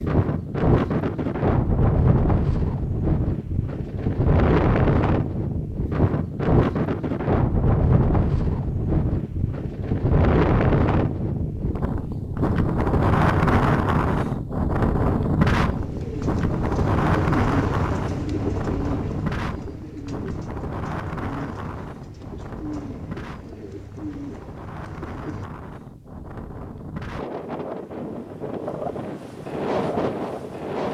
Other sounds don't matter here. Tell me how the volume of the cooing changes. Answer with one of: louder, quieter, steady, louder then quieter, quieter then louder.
quieter.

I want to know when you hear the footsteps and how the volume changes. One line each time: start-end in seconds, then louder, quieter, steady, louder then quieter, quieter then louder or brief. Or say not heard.
not heard.